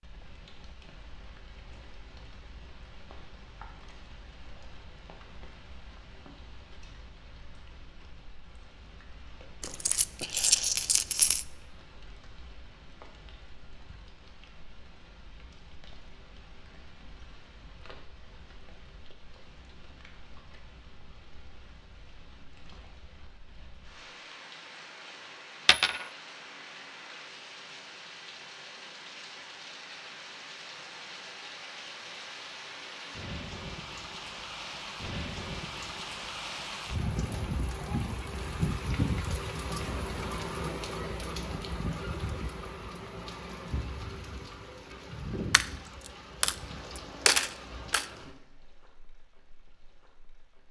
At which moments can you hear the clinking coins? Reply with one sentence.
The clinking coins can be heard from 9.6 to 11.4 s, from 25.6 to 26.1 s and from 45.5 to 48.0 s.